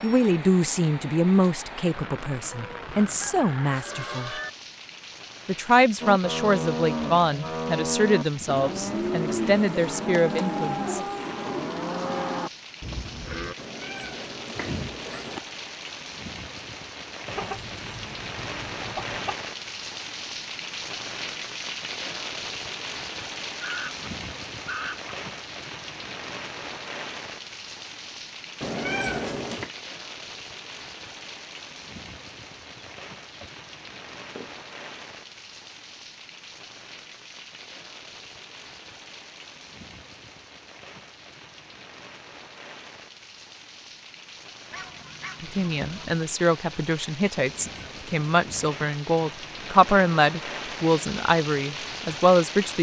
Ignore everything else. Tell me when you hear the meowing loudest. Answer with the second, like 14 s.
29 s.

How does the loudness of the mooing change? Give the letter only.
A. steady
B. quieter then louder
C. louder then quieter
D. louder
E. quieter
A.